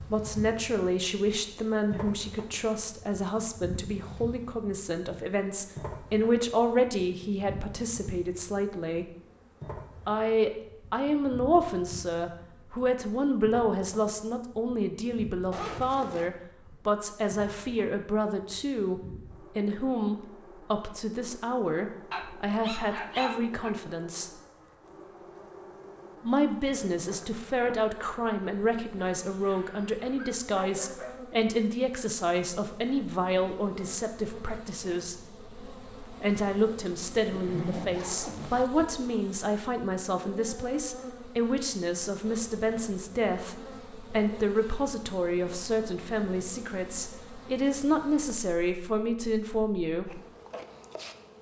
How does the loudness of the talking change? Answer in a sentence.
The loudness of the talking stays about the same.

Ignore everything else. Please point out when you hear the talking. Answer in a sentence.
You can hear the talking from 0.0 to 9.1 s, from 10.1 to 24.3 s, from 26.2 to 35.1 s and from 36.0 to 50.2 s.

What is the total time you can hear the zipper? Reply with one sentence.
You can hear the zipper for 2 seconds altogether.